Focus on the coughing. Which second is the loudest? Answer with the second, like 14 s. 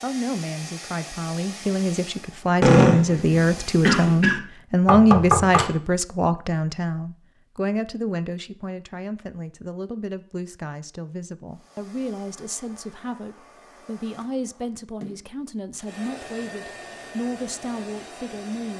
3 s.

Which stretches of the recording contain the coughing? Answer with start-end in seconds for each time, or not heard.
2.6-4.4.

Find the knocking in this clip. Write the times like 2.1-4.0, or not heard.
4.8-5.7.